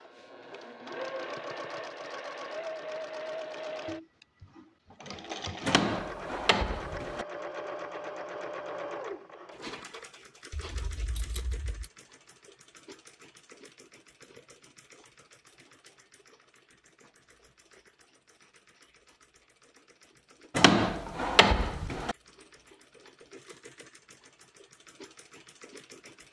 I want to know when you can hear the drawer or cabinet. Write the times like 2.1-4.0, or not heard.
5.7-7.2, 20.6-22.1.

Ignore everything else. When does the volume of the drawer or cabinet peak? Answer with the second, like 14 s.
21 s.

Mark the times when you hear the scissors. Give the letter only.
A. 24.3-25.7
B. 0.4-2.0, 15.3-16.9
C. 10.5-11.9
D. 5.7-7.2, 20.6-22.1
C.